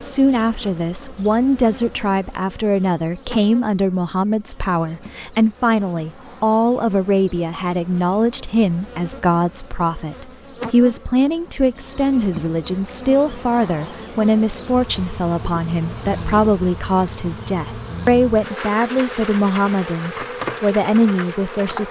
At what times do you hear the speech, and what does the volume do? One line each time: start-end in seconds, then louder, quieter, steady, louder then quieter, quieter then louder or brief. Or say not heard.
0.0-21.8 steady.